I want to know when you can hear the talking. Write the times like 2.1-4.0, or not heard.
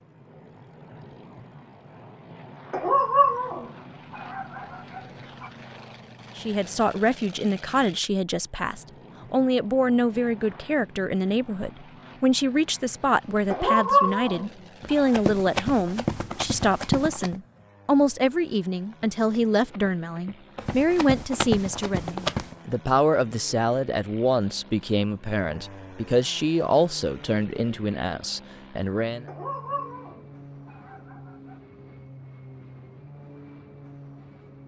6.3-29.2.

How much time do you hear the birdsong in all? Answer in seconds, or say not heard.
not heard.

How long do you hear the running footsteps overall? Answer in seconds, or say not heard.
6 s.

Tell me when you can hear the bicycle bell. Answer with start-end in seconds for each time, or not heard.
not heard.